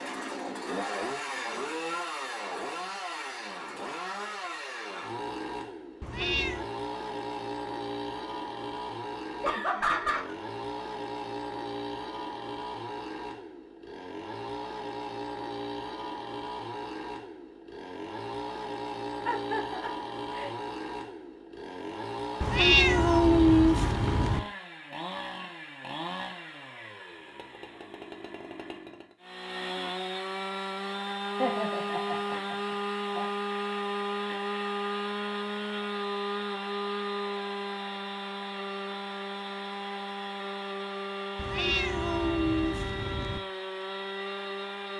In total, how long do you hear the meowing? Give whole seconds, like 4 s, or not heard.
5 s.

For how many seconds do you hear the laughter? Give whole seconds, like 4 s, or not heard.
4 s.